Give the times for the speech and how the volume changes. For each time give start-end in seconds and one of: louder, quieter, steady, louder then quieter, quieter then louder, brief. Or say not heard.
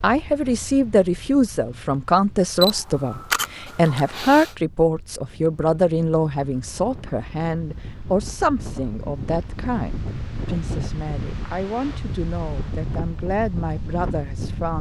0.0-14.7 quieter.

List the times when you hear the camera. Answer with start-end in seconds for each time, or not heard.
2.6-4.5.